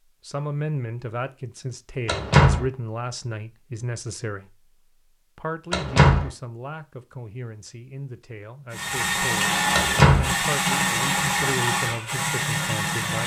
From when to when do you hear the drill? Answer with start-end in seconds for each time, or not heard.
8.7-13.2.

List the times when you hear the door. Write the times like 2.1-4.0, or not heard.
2.0-2.6, 5.7-6.3, 9.7-10.3.